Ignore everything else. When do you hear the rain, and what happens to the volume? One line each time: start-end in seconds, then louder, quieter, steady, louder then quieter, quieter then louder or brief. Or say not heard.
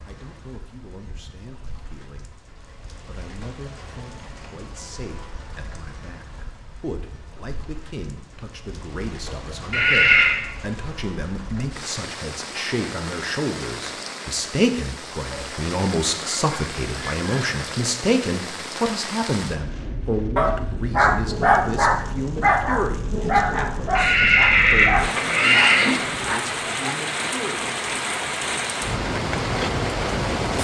0.0-30.6 louder.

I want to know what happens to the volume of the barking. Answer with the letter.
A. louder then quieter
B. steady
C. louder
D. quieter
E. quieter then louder
D.